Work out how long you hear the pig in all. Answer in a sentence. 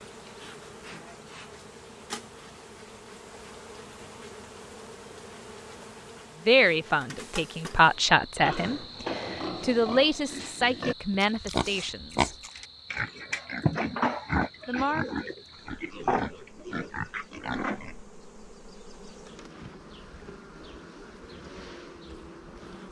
You can hear the pig for 10 seconds altogether.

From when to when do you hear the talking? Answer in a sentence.
The talking can be heard from 6.5 to 12.3 s and from 14.7 to 15.2 s.